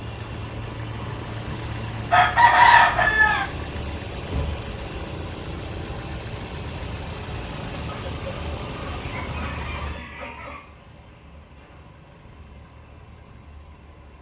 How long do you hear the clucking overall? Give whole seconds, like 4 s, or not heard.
4 s.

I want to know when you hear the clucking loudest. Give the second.
3 s.